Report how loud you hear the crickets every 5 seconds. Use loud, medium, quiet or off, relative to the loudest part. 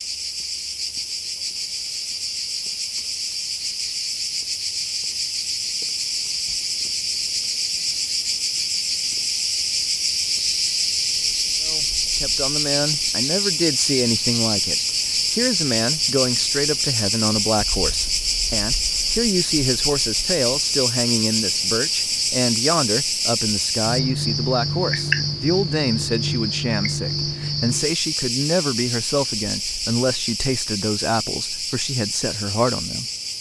medium, loud, loud, loud, loud, loud, medium.